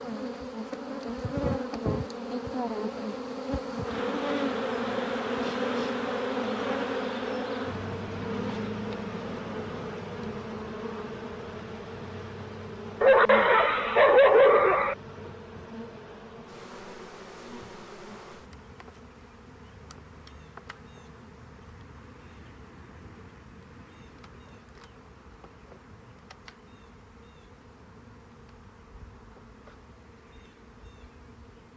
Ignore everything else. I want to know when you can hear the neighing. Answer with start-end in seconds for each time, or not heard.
not heard.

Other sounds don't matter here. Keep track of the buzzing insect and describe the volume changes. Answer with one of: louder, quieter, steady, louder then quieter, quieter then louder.
quieter.